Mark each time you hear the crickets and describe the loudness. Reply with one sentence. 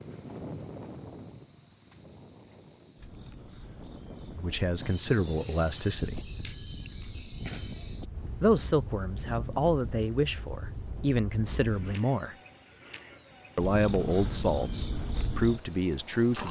The crickets can be heard from 0.0 to 16.4 s, getting louder.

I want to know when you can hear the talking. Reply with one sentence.
You can hear the talking from 4.3 to 6.2 s, from 8.4 to 12.3 s and from 13.6 to 16.4 s.